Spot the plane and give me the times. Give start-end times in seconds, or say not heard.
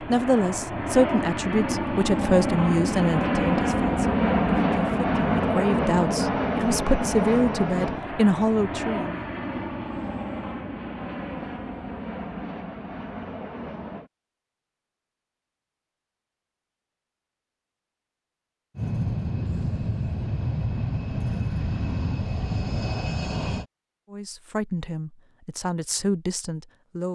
0.0-14.1, 18.8-23.6.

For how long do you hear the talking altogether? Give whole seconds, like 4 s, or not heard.
12 s.